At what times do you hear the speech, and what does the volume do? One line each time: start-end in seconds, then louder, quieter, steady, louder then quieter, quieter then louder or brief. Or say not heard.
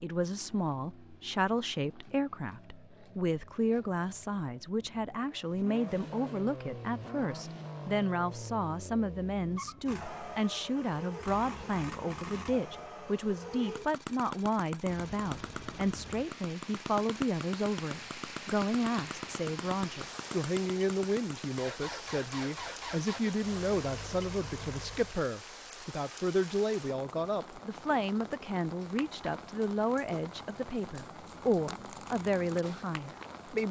0.0-33.6 steady.